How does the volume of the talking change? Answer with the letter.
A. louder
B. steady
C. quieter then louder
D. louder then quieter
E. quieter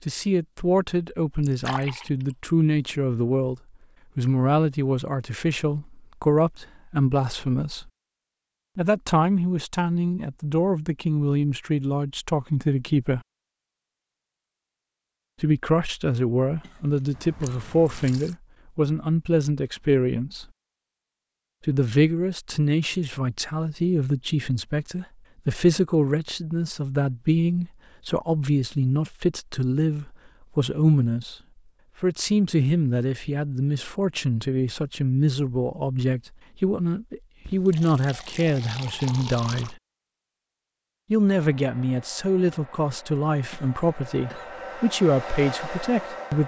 B.